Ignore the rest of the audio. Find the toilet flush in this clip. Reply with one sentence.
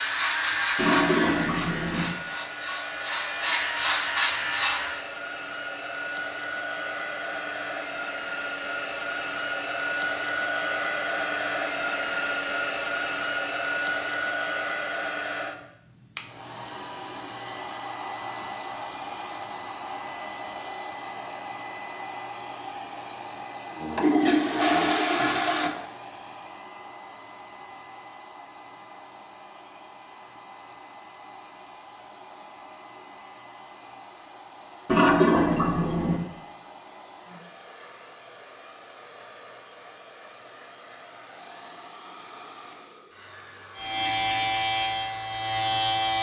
The toilet flush can be heard from 0.8 to 2.1 s, from 23.8 to 25.7 s and from 34.9 to 36.2 s.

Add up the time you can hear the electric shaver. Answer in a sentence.
You can hear the electric shaver for 7 seconds altogether.